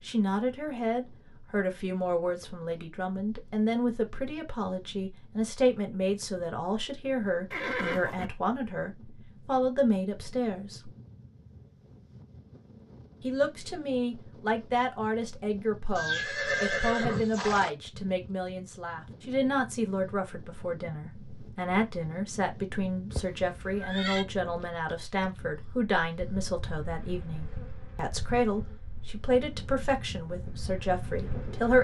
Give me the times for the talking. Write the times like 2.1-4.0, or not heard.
0.0-10.9, 13.2-31.8.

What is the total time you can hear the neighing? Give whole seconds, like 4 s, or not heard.
4 s.